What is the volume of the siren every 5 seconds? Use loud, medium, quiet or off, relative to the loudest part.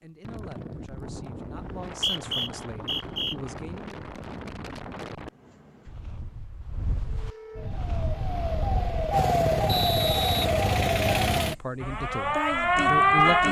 off, medium, loud.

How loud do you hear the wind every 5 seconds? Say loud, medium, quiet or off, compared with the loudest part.
loud, loud, off.